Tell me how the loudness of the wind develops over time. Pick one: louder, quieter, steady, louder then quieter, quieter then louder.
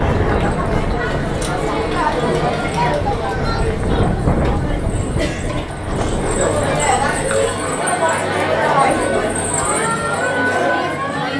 quieter then louder.